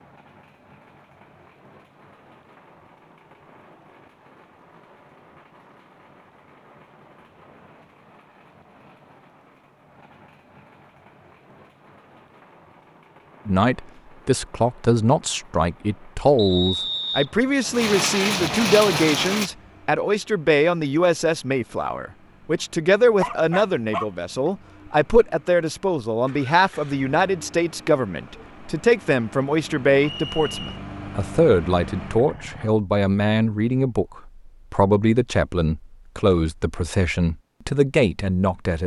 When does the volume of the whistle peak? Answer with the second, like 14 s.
17 s.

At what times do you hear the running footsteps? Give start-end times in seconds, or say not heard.
not heard.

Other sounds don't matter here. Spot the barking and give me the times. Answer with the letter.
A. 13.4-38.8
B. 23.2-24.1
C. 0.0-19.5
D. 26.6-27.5
B.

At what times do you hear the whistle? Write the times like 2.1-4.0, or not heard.
16.4-17.3, 30.0-30.8.